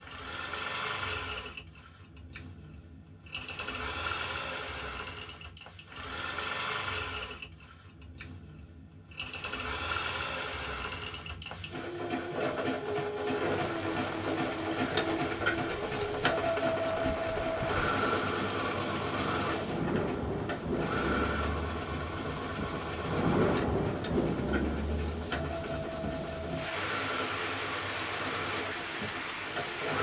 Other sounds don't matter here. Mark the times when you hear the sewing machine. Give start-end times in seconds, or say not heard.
0.0-29.9.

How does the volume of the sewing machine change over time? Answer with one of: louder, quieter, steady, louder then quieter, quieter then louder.
louder then quieter.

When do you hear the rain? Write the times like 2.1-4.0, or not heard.
13.3-29.9.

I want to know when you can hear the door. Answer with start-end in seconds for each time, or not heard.
not heard.